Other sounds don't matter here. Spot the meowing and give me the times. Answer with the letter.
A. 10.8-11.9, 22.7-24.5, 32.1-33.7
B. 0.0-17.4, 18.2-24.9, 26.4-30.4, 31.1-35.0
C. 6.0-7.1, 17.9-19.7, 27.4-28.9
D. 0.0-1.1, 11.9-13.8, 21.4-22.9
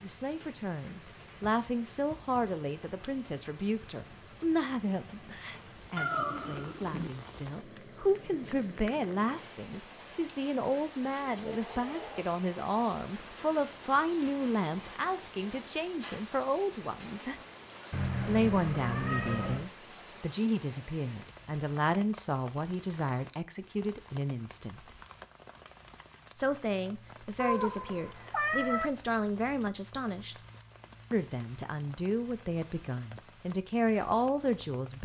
C.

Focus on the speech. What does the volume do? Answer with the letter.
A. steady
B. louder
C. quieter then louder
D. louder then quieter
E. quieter
A.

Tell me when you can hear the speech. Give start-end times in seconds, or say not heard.
0.0-17.4, 18.2-24.9, 26.4-30.4, 31.1-35.0.